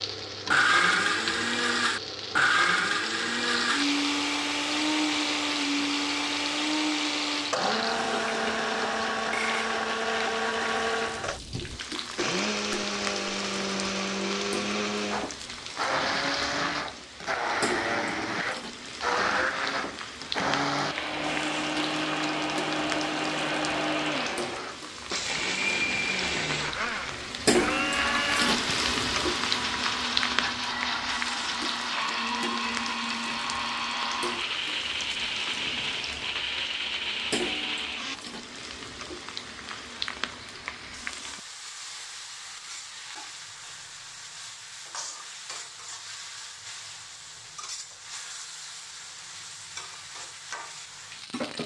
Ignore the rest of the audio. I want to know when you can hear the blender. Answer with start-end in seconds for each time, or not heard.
0.0-38.2.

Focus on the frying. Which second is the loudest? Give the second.
28 s.